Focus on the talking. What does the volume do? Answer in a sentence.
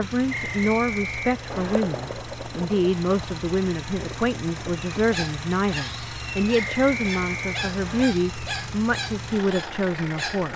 The loudness of the talking stays about the same.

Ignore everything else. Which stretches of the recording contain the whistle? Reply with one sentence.
The whistle can be heard from 0.3 to 1.9 s and from 6.5 to 8.1 s.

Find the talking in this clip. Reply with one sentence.
The talking can be heard from 0.0 to 10.5 s.